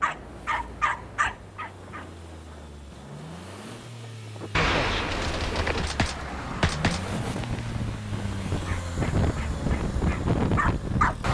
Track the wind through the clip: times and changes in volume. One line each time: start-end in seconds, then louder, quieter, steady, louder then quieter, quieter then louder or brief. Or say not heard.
0.0-11.2 louder.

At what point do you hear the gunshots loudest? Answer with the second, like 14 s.
5 s.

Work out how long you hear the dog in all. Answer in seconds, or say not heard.
5 s.